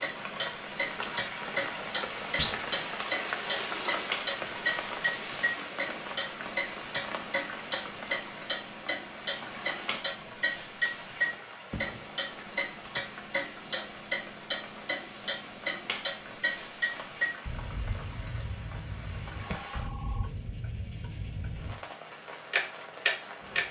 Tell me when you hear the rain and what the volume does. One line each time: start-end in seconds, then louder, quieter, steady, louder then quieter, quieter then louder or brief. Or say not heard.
0.0-23.6 quieter.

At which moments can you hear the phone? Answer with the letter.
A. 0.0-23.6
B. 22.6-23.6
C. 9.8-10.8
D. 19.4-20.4
D.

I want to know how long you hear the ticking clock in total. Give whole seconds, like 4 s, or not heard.
23 s.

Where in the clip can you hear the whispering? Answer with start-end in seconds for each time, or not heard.
not heard.